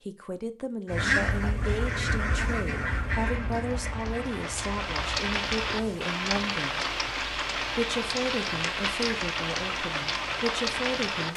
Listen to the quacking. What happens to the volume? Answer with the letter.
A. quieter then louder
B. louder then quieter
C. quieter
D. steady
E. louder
C.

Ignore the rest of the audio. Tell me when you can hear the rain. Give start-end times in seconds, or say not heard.
3.1-11.3.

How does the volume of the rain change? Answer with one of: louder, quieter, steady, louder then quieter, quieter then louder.
louder.